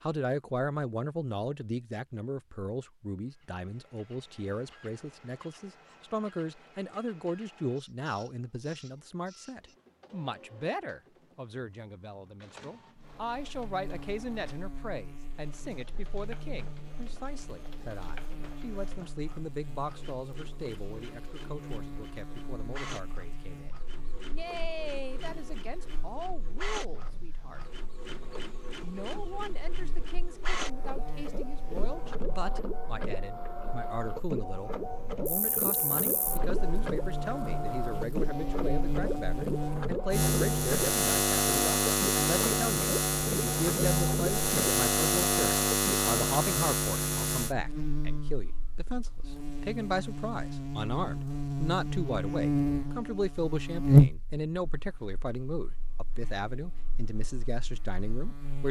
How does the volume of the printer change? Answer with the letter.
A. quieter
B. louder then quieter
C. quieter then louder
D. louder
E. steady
D.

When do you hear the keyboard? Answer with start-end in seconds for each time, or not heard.
not heard.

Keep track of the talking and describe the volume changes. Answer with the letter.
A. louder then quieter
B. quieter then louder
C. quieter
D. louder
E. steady
B.